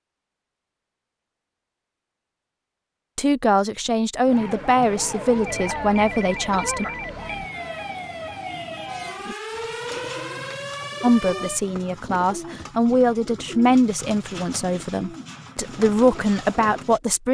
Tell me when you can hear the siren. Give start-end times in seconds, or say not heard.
4.2-11.6.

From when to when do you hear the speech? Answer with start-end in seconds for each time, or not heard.
3.1-6.8, 11.0-17.2.